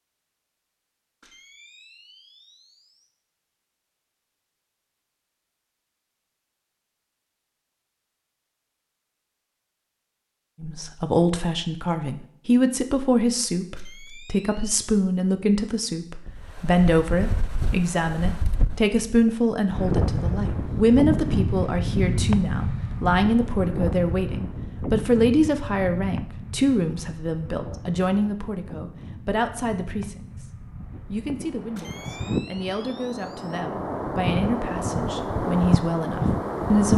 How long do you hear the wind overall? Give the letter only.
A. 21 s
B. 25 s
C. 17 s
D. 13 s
A.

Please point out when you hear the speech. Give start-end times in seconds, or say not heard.
10.6-30.4, 31.1-36.9.